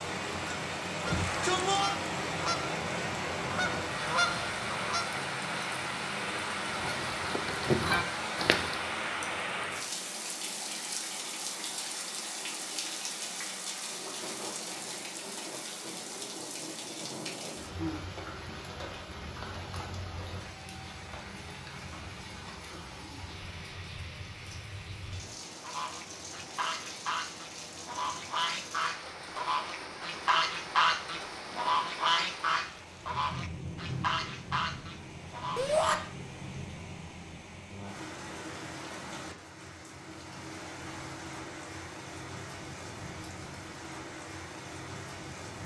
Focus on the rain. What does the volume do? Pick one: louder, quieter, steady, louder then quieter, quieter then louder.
quieter.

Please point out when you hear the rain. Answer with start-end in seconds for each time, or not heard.
0.0-45.6.